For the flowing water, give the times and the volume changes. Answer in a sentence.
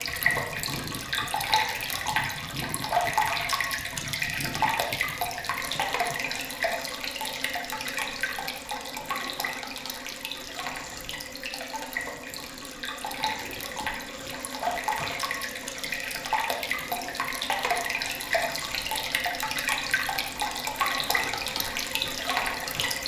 The flowing water can be heard from 0.0 to 23.0 s, getting quieter then louder.